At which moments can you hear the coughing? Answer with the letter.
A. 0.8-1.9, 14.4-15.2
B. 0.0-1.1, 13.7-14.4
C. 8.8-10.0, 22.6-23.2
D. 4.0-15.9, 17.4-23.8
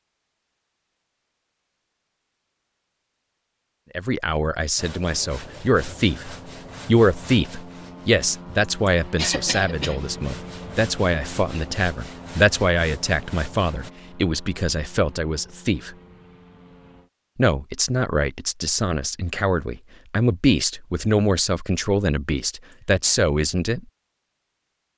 C.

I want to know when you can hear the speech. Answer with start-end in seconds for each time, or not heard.
4.0-15.9, 17.4-23.8.